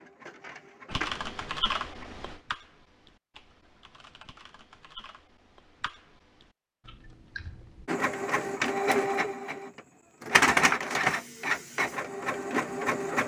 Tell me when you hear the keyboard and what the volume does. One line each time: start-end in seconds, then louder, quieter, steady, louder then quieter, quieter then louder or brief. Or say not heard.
0.9-7.9 quieter then louder.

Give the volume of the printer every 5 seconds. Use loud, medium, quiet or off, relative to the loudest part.
quiet, loud, loud.